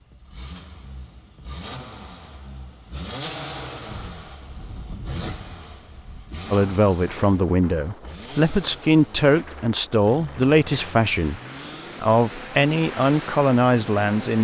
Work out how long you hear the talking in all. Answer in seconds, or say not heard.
7 s.